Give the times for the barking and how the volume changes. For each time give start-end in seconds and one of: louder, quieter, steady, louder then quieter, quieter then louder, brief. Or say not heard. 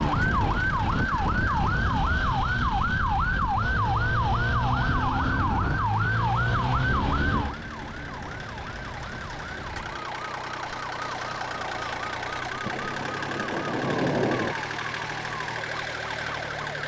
not heard.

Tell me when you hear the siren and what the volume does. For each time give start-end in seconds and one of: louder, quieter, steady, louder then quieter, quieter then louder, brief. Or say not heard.
0.0-16.8 quieter.